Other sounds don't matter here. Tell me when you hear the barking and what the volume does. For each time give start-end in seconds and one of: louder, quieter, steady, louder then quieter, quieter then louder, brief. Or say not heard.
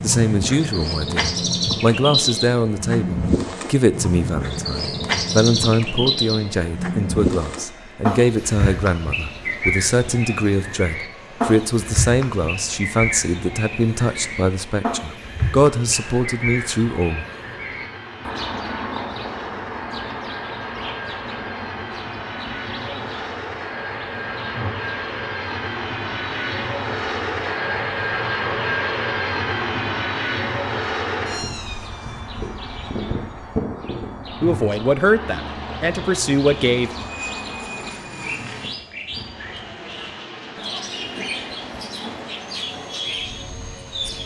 not heard.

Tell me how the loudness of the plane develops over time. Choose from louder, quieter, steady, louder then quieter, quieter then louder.
louder then quieter.